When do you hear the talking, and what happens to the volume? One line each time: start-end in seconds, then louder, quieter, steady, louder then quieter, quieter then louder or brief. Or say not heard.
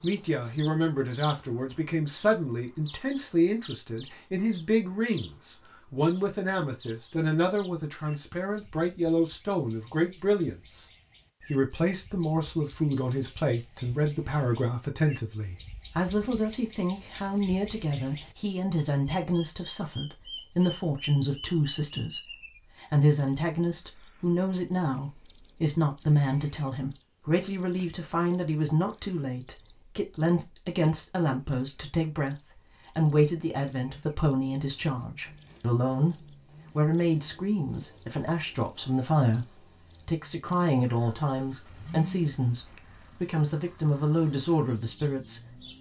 0.0-10.8 steady
11.5-45.7 steady.